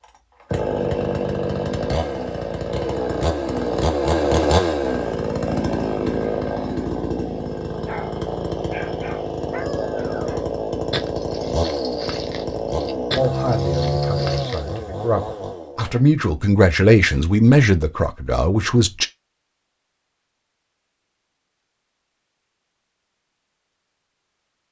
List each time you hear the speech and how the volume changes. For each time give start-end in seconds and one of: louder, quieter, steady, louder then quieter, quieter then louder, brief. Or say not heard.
13.2-19.1 louder then quieter.